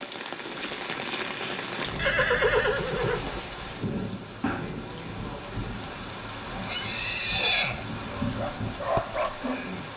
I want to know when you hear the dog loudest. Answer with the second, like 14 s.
9 s.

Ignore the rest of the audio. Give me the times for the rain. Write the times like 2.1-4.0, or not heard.
0.0-9.9.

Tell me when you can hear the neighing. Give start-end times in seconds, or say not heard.
1.9-3.2, 6.5-7.8.